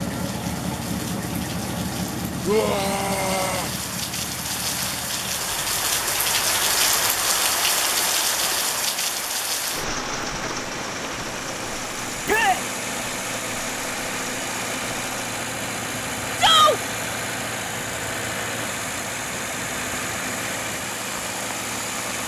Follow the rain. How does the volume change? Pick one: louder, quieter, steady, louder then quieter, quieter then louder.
louder then quieter.